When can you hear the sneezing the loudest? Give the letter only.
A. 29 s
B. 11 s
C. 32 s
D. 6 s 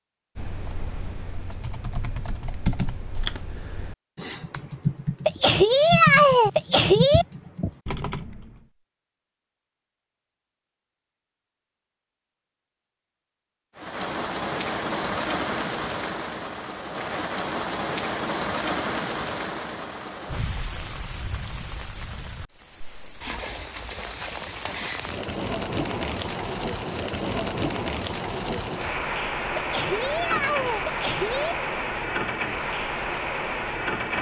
D.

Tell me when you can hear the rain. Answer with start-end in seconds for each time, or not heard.
13.8-34.1.